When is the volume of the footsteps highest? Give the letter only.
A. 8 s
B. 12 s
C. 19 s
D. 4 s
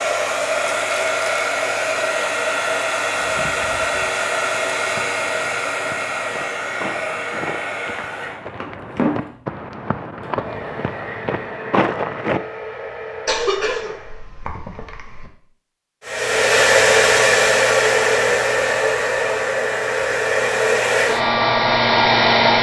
B.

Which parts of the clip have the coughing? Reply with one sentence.
You can hear the coughing from 13.2 to 15.3 s.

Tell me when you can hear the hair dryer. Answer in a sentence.
The hair dryer can be heard from 0.0 to 14.2 s and from 16.1 to 22.5 s.